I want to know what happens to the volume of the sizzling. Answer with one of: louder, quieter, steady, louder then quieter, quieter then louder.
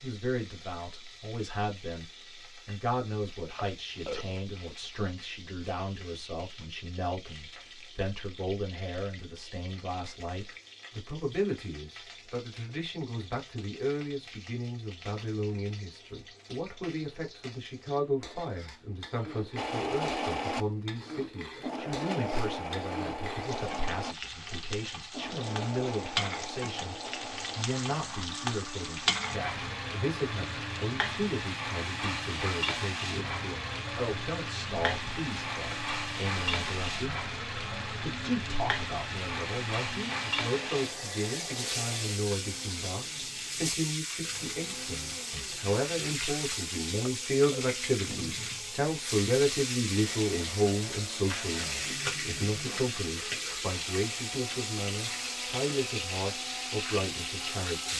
louder.